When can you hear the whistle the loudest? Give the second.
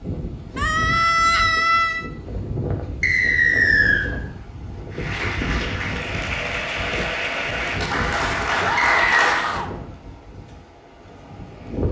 4 s.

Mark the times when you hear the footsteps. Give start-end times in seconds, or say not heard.
not heard.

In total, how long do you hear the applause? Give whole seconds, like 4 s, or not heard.
5 s.